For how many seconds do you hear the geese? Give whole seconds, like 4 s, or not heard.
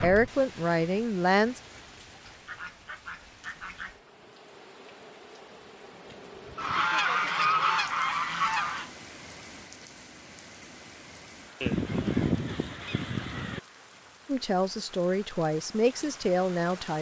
6 s.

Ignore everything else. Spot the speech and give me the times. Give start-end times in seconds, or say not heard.
0.0-1.6, 14.2-16.9.